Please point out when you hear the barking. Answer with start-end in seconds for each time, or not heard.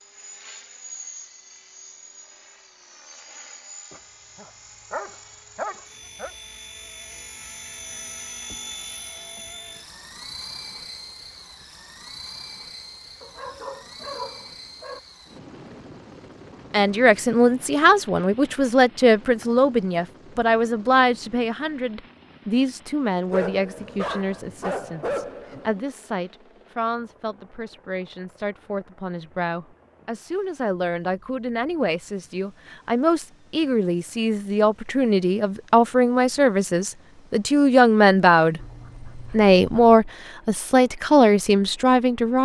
3.9-6.3, 13.2-15.0, 23.3-25.9, 38.5-40.0.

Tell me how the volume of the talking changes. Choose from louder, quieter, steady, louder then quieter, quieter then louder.
quieter then louder.